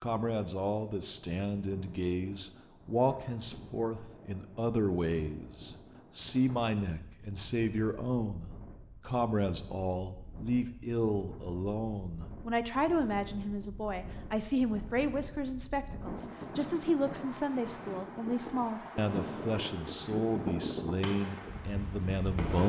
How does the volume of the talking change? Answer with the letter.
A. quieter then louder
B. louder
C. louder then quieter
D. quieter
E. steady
E.